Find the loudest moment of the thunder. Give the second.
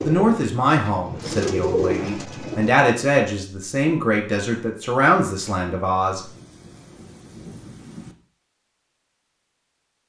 8 s.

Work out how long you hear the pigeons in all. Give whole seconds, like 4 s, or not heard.
3 s.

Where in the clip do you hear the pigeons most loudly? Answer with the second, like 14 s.
2 s.